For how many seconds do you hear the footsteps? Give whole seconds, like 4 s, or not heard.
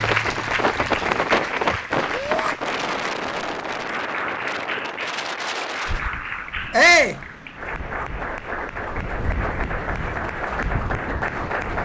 not heard.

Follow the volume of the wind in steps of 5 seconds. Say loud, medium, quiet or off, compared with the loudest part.
loud, medium, medium.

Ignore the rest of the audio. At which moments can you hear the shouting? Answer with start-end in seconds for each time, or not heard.
2.1-2.5, 6.7-7.2.